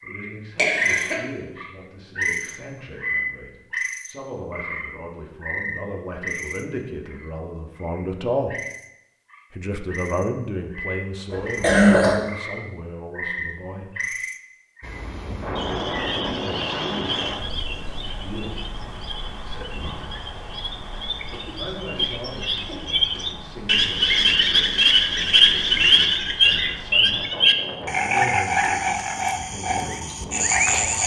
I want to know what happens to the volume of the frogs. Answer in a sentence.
The volume of the frogs goes down, then up.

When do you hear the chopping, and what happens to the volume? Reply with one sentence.
The chopping can't be heard in this clip.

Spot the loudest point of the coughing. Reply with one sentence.
The loudest moment of the coughing is at 12 seconds.